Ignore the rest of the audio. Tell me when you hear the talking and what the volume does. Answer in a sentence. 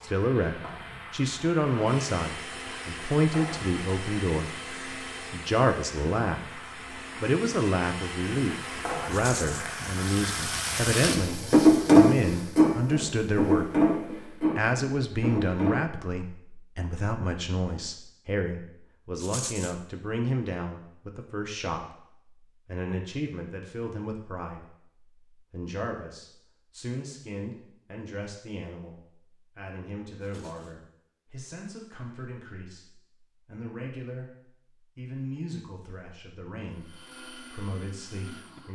The talking can be heard from 0.0 to 38.6 s, getting quieter.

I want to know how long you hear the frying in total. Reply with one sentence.
The frying can be heard for 16 seconds in total.